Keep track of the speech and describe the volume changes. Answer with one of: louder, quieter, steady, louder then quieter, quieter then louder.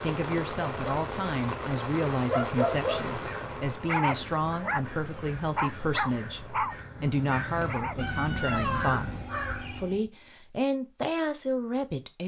steady.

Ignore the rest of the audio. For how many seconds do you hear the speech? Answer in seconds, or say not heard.
12 s.